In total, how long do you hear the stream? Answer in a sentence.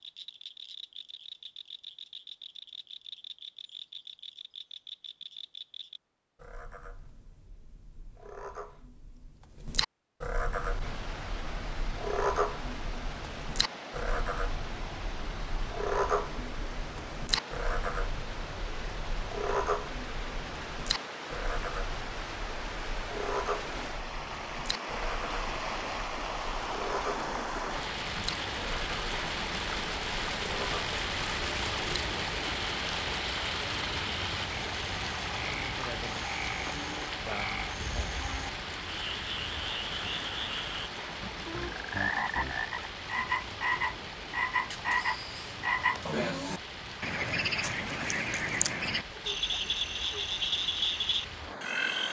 The stream can be heard for 42 seconds in total.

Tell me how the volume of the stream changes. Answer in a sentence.
The volume of the stream goes up, then down.